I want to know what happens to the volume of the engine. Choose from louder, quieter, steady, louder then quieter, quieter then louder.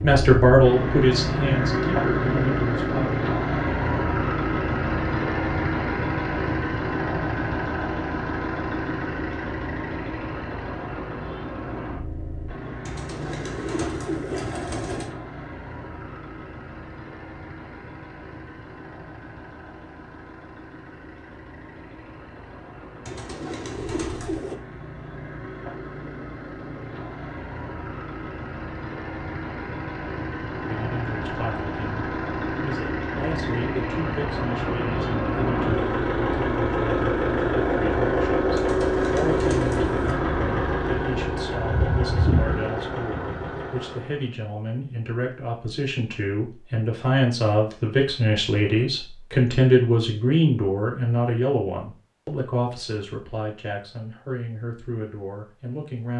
quieter then louder.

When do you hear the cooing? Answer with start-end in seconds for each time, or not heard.
12.8-15.1, 23.1-24.6, 38.5-40.2.